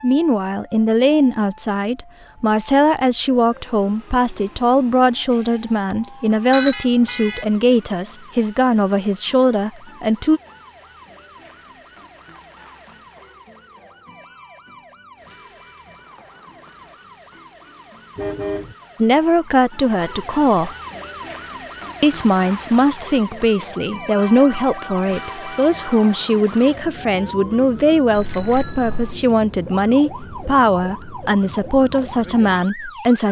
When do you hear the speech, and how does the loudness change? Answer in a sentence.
You can hear the speech from 0.0 to 10.4 s, at a steady volume; briefly from 18.9 to 20.8 s; and from 22.0 to 33.2 s, at a steady volume.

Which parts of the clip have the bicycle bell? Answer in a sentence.
You can hear the bicycle bell from 5.3 to 6.8 s and from 28.1 to 29.2 s.